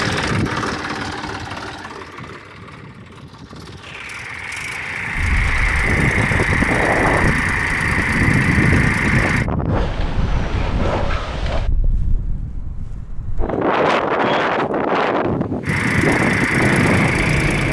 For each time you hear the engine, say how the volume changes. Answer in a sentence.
You can hear the engine from 0.0 to 9.5 s, getting quieter then louder; and briefly from 15.6 to 17.6 s.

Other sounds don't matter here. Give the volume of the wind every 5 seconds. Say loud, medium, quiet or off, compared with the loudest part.
off, loud, loud, loud.